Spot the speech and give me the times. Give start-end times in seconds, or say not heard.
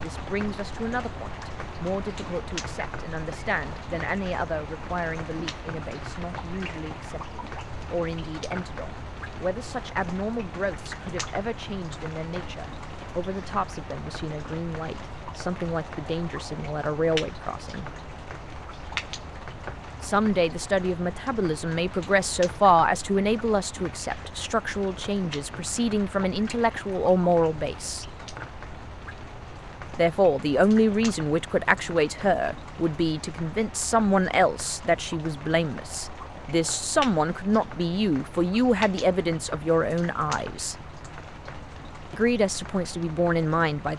0.0-17.9, 20.0-28.1, 29.9-40.8, 42.1-43.9.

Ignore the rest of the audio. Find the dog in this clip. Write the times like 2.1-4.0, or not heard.
not heard.